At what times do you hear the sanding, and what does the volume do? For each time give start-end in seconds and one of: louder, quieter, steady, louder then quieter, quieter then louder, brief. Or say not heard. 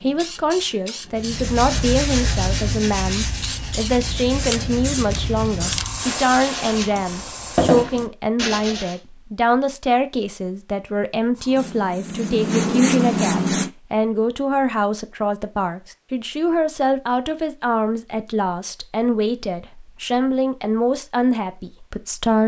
1.1-8.9 quieter then louder.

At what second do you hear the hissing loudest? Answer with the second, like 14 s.
13 s.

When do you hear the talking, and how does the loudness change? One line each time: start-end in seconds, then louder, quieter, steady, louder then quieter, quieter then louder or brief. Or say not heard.
0.0-22.4 steady.